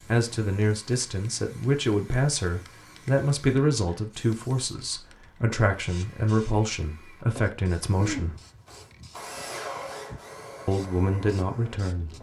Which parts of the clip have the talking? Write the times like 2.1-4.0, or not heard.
0.1-8.3, 10.7-12.1.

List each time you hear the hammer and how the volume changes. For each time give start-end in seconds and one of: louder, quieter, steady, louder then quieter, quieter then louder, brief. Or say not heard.
not heard.